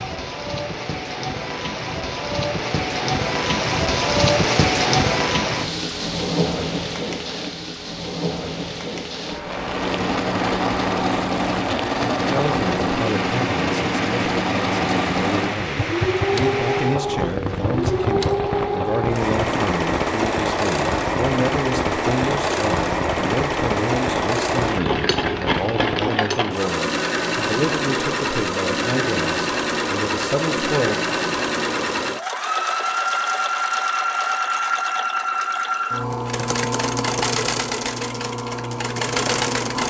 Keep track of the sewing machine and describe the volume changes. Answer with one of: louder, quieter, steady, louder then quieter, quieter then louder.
steady.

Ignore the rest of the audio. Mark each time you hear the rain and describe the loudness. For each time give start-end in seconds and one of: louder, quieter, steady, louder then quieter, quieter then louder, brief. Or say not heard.
0.0-26.1 quieter.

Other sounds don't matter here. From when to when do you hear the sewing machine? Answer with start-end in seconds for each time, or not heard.
9.4-39.8.